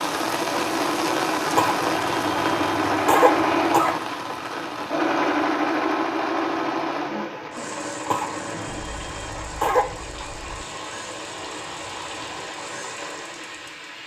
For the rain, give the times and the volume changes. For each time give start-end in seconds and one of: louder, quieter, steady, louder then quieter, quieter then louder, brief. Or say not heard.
0.0-14.0 quieter.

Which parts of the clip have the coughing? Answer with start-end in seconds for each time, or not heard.
1.6-4.0, 8.1-10.0.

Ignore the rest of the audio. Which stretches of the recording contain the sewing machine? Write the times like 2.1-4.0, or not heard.
0.1-13.9.